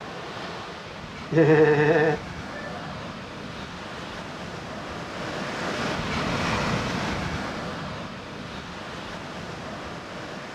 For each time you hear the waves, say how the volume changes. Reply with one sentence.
You can hear the waves from 0.0 to 10.4 s, getting louder then quieter.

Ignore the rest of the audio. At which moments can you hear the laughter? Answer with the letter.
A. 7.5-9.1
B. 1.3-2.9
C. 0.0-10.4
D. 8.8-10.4
B.